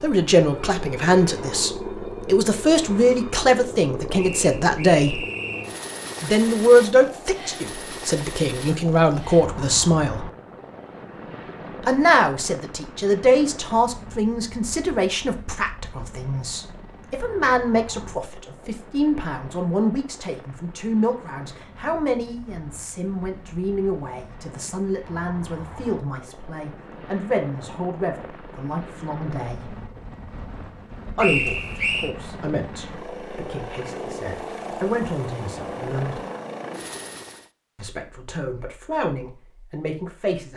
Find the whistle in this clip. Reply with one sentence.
You can hear the whistle from 4.2 to 5.7 s and from 31.1 to 32.1 s.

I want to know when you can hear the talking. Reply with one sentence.
The talking can be heard from 0.0 to 5.2 s, from 6.2 to 10.2 s, from 11.8 to 29.8 s, from 31.1 to 36.2 s and from 37.8 to 40.5 s.